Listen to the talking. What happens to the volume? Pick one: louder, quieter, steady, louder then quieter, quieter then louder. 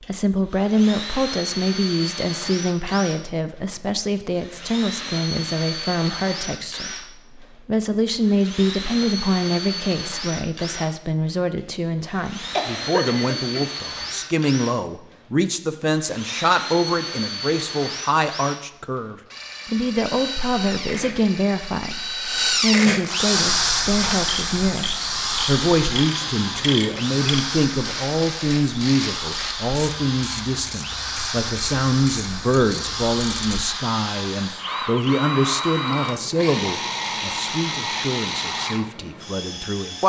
steady.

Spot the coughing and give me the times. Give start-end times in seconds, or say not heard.
12.5-13.6.